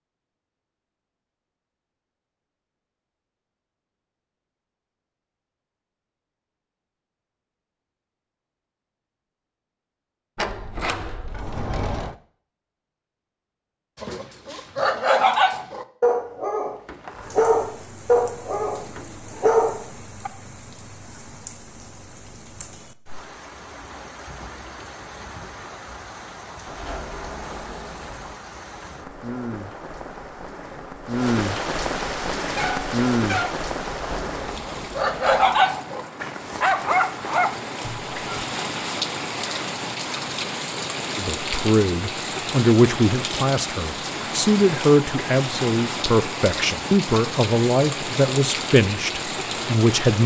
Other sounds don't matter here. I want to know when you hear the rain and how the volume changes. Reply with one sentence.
You can hear the rain from 17.0 to 50.2 s, getting louder.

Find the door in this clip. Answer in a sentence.
You can hear the door from 10.3 to 12.2 s, from 26.6 to 28.4 s and from 33.9 to 35.4 s.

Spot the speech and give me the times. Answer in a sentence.
You can hear the speech from 41.1 to 50.2 s.